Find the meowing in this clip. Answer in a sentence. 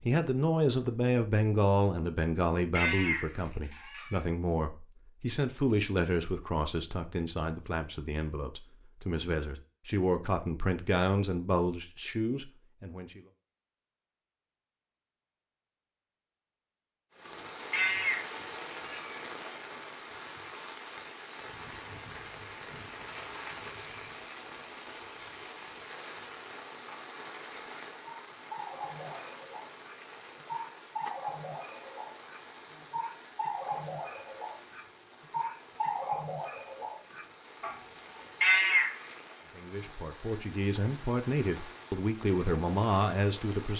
You can hear the meowing from 2.8 to 4.2 s, from 17.7 to 19.2 s and from 38.4 to 39.0 s.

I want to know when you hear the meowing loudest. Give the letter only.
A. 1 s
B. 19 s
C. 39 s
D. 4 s
C.